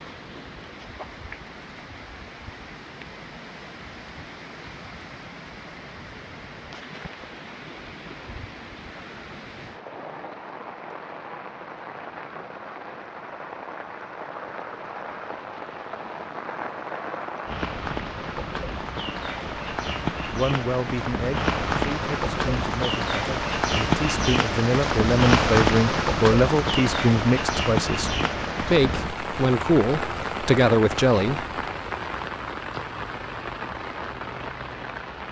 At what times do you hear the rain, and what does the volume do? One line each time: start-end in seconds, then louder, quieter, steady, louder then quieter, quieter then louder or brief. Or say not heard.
0.0-35.2 louder then quieter.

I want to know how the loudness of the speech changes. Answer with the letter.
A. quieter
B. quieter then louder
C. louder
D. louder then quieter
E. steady
C.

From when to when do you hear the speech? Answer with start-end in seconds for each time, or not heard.
20.2-31.4.